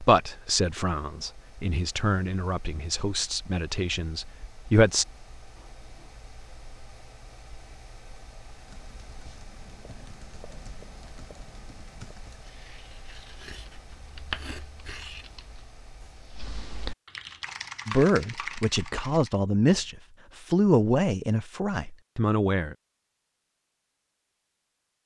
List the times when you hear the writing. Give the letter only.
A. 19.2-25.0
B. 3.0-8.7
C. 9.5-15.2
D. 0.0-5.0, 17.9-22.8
C.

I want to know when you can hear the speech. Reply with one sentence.
The speech can be heard from 0.0 to 5.0 s and from 17.9 to 22.8 s.